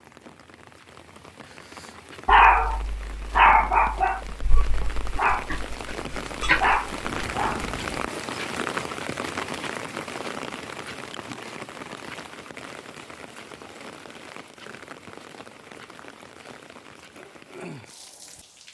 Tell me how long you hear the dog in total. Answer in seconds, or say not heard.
6 s.